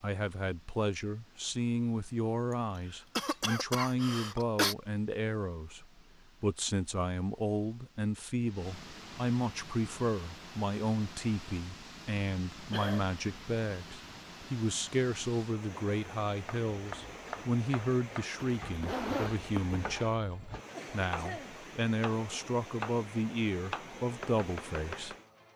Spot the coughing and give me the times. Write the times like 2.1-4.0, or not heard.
2.5-4.8, 12.7-13.1, 20.2-21.6.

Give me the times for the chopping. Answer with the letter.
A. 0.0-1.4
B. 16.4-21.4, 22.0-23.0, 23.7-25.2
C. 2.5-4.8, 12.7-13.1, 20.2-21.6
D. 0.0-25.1
B.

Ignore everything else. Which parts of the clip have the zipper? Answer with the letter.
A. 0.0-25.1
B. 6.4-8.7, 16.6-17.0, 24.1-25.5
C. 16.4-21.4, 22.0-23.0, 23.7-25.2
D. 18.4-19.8
D.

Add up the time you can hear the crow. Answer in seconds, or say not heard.
not heard.